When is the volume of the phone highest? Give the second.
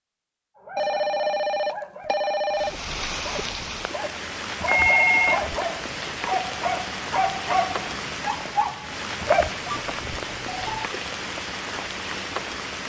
5 s.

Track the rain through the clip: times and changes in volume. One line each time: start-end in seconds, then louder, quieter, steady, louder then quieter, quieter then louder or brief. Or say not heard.
2.5-12.8 steady.